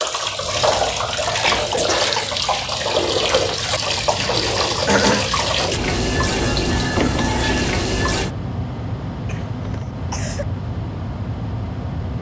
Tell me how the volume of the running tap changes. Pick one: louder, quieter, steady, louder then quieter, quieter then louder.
steady.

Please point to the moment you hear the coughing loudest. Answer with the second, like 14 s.
5 s.